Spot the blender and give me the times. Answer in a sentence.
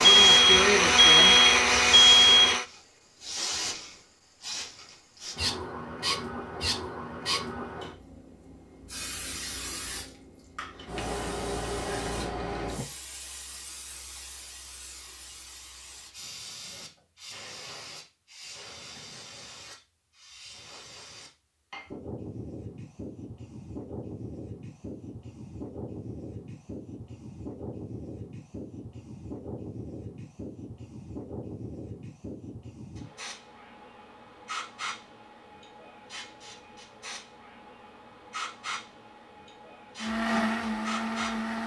You can hear the blender from 0.0 to 2.6 s and from 40.0 to 41.6 s.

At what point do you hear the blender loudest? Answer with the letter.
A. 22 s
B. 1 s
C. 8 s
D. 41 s
B.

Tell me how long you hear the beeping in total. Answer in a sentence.
The beeping can be heard for 2 seconds in total.